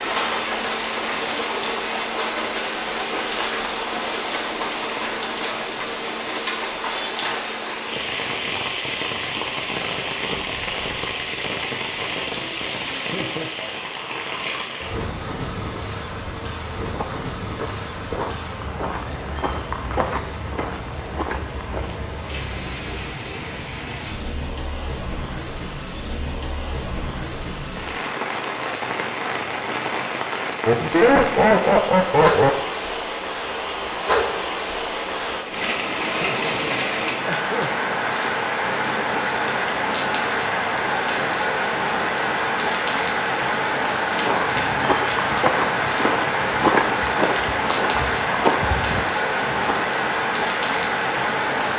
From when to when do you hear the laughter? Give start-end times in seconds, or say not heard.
12.9-13.5, 30.6-32.5, 36.0-37.7.